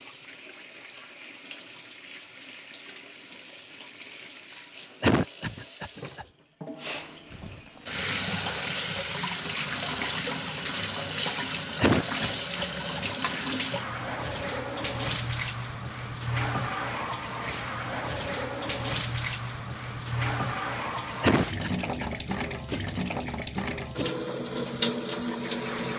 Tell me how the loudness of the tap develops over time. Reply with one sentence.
The volume of the tap goes up.